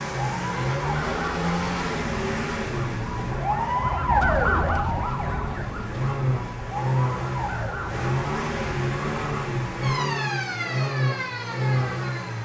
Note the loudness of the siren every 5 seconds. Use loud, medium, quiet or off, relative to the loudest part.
loud, medium, medium.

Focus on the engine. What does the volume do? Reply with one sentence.
The volume of the engine goes down, then up.